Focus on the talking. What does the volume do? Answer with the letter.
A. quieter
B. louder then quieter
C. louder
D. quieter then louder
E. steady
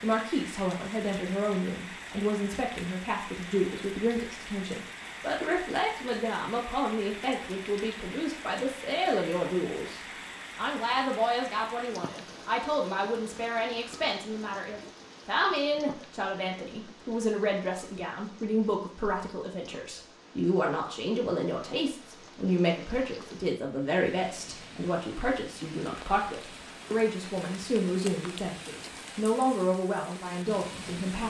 E.